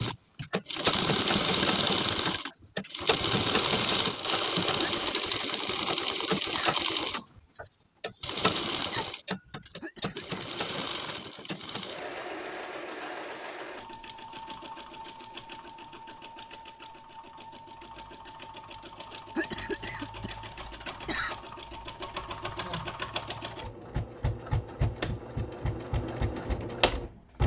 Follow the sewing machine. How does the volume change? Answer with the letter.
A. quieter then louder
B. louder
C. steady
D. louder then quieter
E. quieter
A.